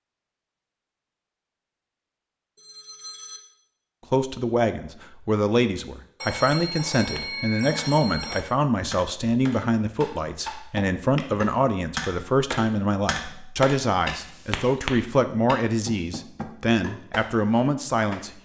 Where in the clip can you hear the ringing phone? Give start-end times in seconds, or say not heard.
2.5-3.4, 6.2-8.4, 14.1-14.8.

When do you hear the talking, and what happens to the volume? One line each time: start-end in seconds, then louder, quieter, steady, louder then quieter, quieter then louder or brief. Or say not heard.
4.1-18.3 steady.